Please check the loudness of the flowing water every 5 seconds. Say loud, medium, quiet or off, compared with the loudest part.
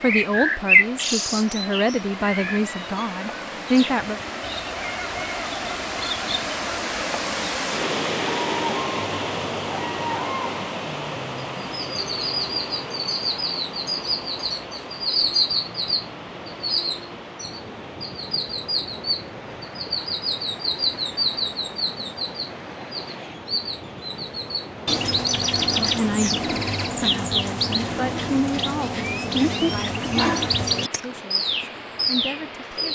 medium, loud, medium, medium, medium, medium, medium.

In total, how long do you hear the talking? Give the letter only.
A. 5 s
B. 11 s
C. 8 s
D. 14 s
B.